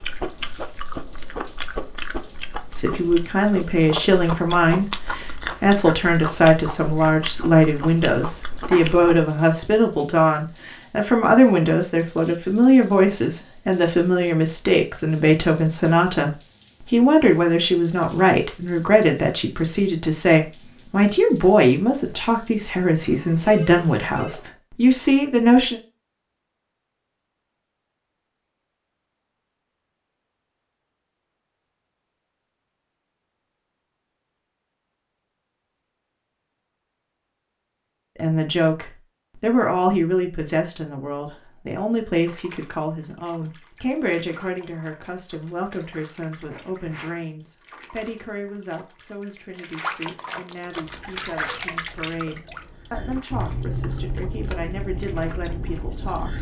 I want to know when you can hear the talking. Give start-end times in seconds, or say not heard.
2.7-25.8, 38.1-56.3.